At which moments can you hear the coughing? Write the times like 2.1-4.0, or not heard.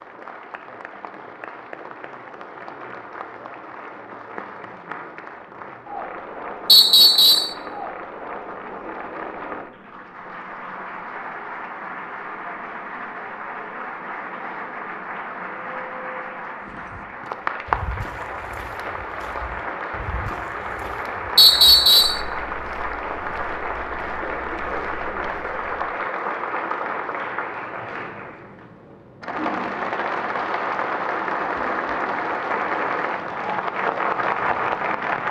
not heard.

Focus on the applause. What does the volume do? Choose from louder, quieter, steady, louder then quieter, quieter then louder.
louder.